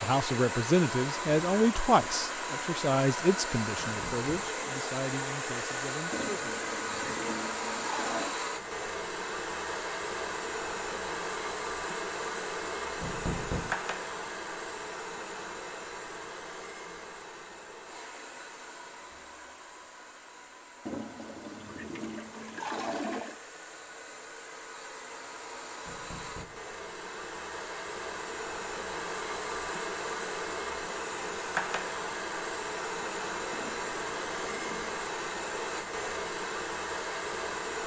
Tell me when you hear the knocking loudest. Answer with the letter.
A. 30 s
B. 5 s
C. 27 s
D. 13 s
D.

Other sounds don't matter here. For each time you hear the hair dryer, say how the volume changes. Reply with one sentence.
You can hear the hair dryer from 0.0 to 37.8 s, getting quieter then louder.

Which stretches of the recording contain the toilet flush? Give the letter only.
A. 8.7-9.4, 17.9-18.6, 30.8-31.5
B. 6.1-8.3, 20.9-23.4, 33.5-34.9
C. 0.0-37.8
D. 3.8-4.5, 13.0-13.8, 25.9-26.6
B.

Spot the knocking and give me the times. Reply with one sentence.
You can hear the knocking from 3.8 to 4.5 s, from 13.0 to 13.8 s and from 25.9 to 26.6 s.